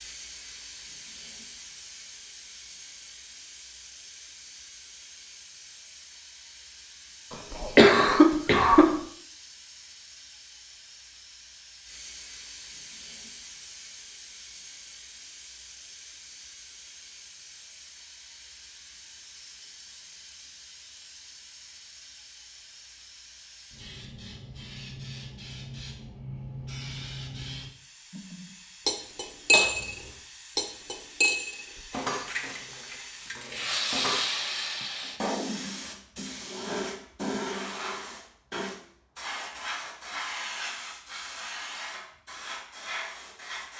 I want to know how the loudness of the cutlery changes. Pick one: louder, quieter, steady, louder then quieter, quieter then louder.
quieter.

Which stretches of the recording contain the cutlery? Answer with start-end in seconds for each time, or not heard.
28.1-34.2.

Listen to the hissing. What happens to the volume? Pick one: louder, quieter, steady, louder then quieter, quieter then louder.
louder.